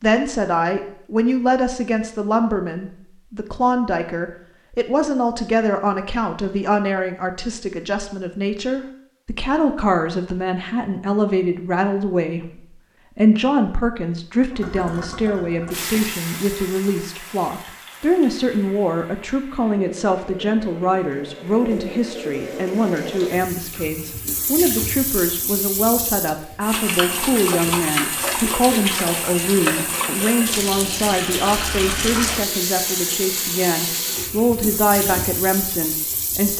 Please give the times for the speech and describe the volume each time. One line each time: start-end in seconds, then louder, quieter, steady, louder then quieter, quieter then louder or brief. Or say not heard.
0.0-36.5 steady.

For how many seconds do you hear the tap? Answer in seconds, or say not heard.
22 s.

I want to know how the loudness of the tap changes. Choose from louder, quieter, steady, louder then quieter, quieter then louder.
louder.